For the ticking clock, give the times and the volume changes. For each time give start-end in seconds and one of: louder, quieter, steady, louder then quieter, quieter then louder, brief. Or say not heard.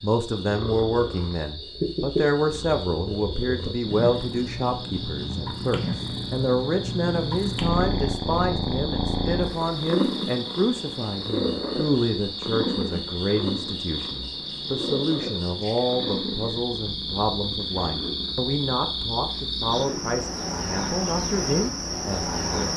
not heard.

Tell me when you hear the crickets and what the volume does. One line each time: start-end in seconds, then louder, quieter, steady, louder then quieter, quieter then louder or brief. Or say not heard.
0.0-22.7 louder.